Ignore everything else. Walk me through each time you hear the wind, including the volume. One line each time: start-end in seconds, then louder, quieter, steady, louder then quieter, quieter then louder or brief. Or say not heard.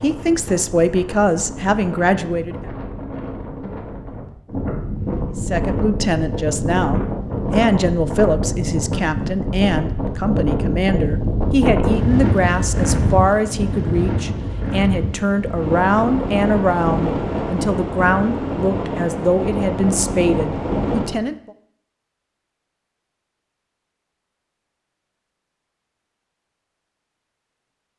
0.0-21.2 louder.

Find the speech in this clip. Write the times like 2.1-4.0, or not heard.
0.0-2.7, 5.3-21.5.